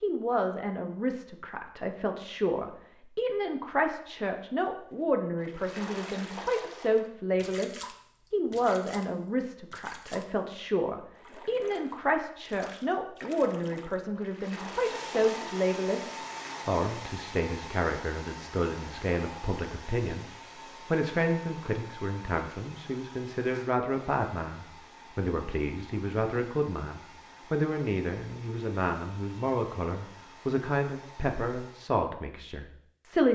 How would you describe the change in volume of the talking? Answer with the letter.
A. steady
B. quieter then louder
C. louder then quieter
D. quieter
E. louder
A.